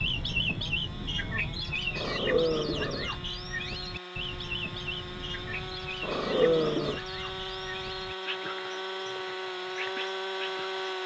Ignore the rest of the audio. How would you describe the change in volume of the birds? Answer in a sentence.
The loudness of the birds goes down.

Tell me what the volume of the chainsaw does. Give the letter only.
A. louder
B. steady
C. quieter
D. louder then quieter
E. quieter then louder
A.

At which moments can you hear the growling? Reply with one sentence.
The growling can be heard from 1.9 to 3.1 s and from 6.0 to 7.0 s.